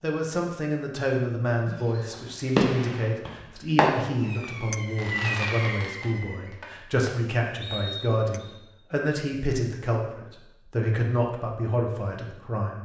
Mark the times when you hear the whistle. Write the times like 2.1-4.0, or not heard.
7.6-8.6.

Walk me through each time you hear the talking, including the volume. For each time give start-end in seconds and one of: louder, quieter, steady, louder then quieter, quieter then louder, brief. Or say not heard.
0.0-12.8 steady.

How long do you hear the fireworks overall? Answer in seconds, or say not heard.
6 s.